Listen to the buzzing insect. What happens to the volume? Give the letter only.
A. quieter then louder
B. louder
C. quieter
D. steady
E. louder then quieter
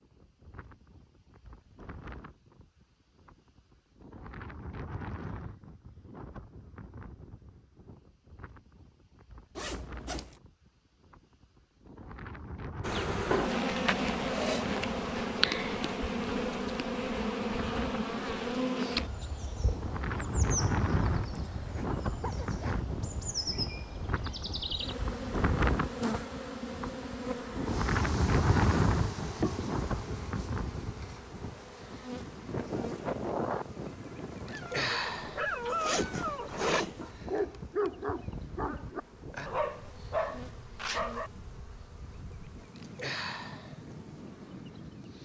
C.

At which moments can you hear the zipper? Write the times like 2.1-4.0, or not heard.
9.6-10.4, 21.1-22.8, 35.6-37.1.